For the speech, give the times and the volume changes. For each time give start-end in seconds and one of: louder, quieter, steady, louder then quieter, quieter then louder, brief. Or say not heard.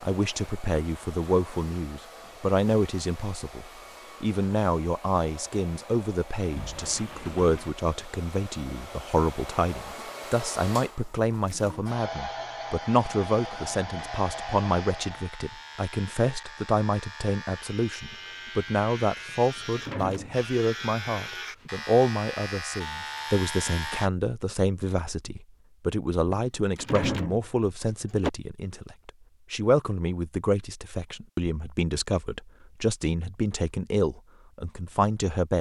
0.0-35.5 steady.